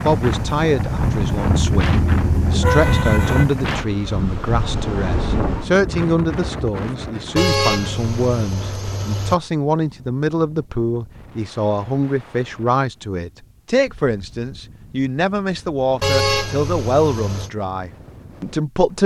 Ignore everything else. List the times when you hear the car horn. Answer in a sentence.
The car horn can be heard from 1.4 to 3.5 s, from 7.3 to 9.3 s and from 16.0 to 17.5 s.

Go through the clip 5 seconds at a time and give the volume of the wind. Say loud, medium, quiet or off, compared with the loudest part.
loud, medium, quiet, quiet.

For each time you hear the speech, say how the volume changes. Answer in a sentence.
You can hear the speech from 0.0 to 19.0 s, at a steady volume.